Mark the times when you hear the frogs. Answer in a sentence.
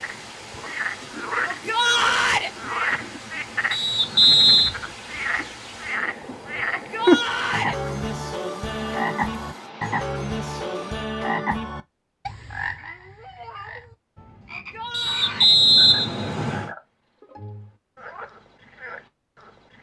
The frogs can be heard from 0.0 to 19.7 s.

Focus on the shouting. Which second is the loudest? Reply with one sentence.
The loudest moment of the shouting is at 2 seconds.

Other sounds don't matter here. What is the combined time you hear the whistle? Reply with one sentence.
You can hear the whistle for 3 seconds altogether.